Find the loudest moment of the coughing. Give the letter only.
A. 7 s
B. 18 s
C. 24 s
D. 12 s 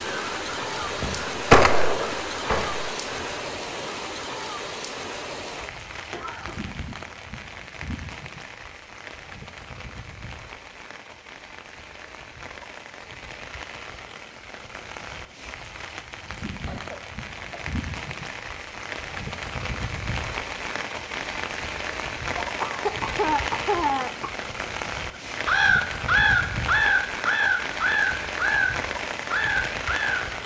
C.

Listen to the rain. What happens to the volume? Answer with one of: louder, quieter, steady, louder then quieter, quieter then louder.
quieter then louder.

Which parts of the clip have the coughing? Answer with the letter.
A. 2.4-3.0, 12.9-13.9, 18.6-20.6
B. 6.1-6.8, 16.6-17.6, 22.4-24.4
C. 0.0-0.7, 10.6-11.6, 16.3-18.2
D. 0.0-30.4
B.